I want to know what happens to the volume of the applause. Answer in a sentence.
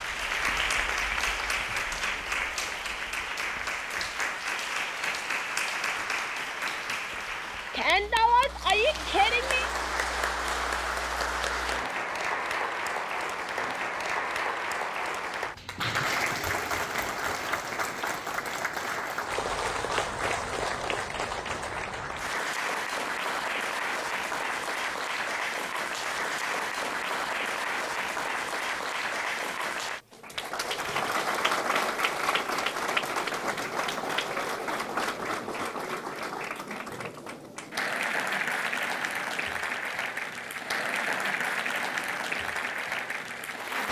The volume of the applause stays about the same.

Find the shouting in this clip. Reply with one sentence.
You can hear the shouting from 7.7 to 9.7 s.